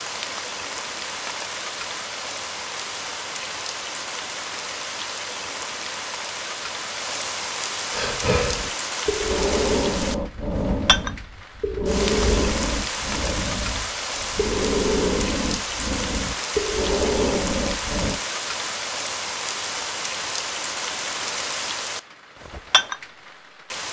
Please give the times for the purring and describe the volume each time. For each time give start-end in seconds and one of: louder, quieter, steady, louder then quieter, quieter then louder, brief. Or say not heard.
not heard.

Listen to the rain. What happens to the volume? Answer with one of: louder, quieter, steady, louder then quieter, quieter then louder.
steady.